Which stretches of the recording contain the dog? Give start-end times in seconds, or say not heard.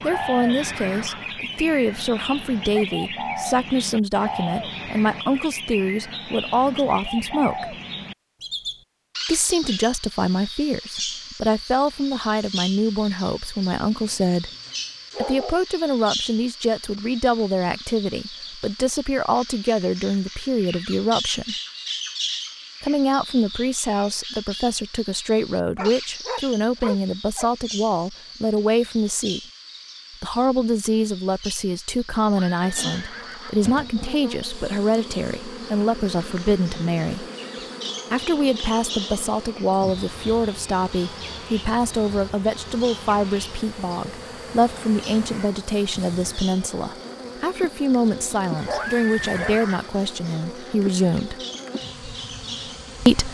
13.8-15.6, 25.8-27.5, 47.9-49.6.